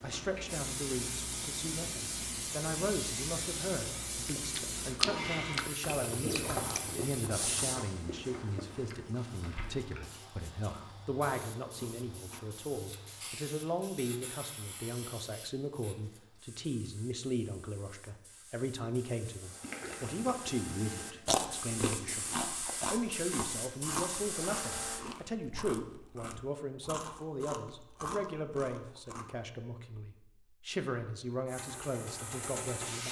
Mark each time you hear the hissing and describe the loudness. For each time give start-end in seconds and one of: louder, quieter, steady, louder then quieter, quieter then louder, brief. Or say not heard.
0.0-25.1 quieter then louder
31.4-33.0 brief.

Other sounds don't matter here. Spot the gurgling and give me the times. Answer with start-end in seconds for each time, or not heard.
6.1-6.7, 19.6-21.4.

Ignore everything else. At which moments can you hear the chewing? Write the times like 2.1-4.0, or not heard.
4.2-12.4, 21.2-29.3.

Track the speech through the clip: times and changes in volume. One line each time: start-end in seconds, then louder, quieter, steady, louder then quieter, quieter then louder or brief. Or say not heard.
0.0-33.0 steady.